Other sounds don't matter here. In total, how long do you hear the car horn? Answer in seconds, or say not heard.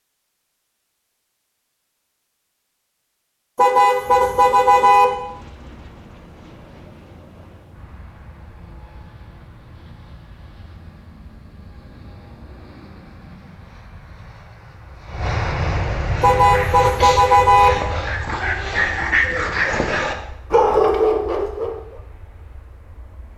3 s.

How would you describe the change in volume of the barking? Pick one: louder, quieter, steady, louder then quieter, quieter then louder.
louder.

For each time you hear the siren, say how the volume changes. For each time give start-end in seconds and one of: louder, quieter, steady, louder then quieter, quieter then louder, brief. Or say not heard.
not heard.